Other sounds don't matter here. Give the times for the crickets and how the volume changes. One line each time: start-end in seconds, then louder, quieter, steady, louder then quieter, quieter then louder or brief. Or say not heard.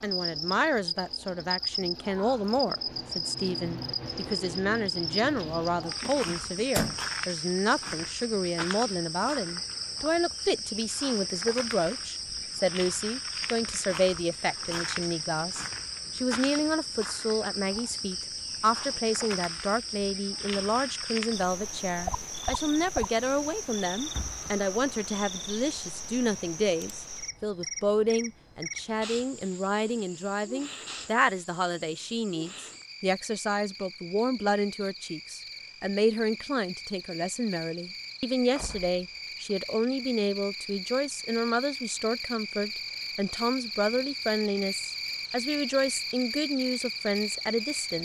0.0-48.0 quieter then louder.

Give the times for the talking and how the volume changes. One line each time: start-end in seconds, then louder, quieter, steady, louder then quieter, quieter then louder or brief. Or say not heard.
0.0-48.0 steady.